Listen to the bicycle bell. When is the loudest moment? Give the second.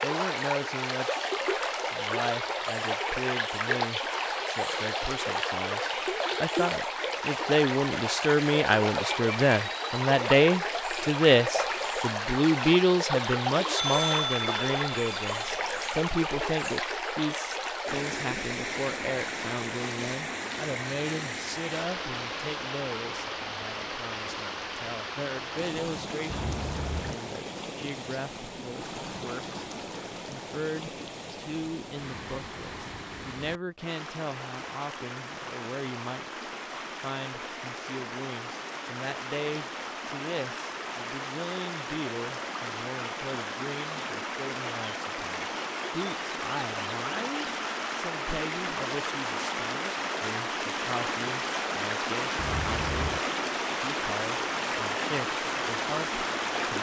14 s.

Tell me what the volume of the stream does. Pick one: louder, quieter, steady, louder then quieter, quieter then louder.
quieter then louder.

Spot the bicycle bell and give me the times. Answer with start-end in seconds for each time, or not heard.
13.8-15.9, 26.3-27.1, 52.4-53.2.